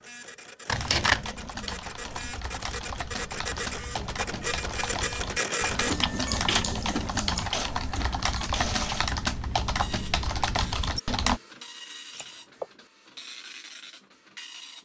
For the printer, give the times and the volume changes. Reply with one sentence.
The printer can be heard from 0.0 to 14.8 s, getting louder then quieter.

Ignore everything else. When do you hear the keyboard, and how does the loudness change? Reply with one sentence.
You can hear the keyboard from 0.7 to 11.4 s, getting louder.